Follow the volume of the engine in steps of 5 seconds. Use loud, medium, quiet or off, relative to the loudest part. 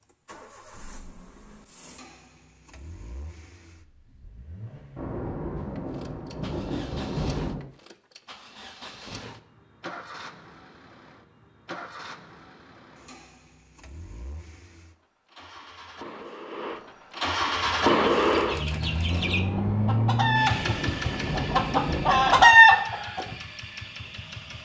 quiet, quiet, quiet, loud, medium.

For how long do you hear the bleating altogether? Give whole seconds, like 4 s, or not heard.
not heard.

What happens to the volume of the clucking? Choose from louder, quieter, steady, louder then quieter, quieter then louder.
louder.